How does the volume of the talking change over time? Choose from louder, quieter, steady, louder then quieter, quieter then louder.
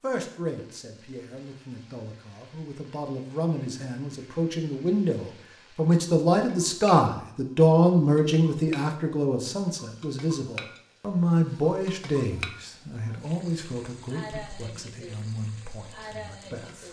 louder then quieter.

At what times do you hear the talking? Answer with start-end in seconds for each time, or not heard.
0.0-16.8.